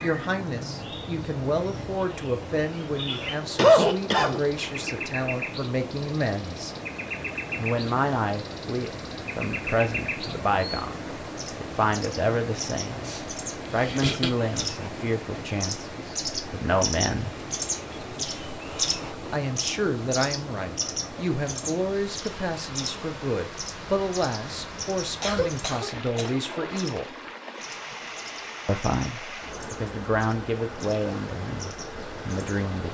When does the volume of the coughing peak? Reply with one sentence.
The loudest moment of the coughing is at 4 seconds.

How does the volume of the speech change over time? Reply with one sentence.
The volume of the speech stays about the same.